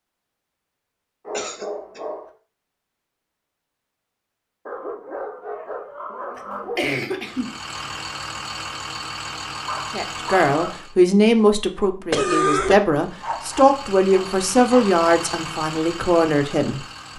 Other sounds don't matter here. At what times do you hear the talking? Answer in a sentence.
You can hear the talking from 9.9 to 16.9 s.